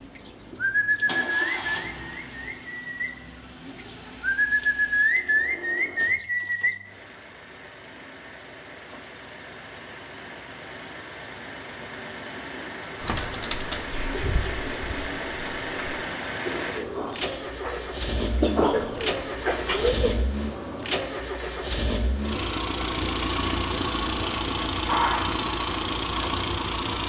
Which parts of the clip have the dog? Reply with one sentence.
You can hear the dog from 24.9 to 25.4 s.